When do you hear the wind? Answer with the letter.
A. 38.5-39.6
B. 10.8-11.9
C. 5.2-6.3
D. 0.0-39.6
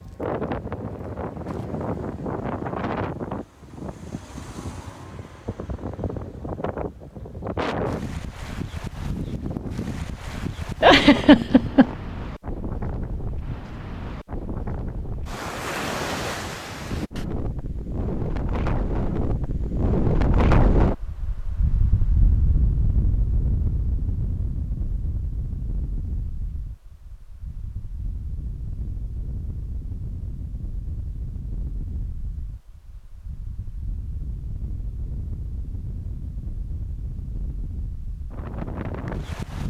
D.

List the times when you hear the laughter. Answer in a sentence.
You can hear the laughter from 10.8 to 11.9 s.